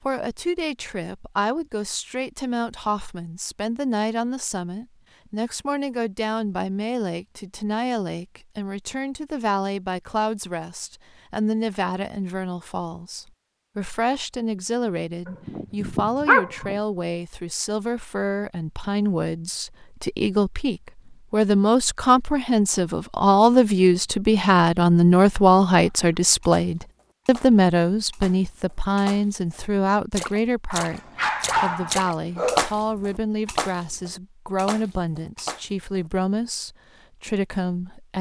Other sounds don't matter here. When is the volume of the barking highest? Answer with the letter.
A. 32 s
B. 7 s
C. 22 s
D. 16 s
D.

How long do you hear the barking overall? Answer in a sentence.
The barking can be heard for 3 seconds in total.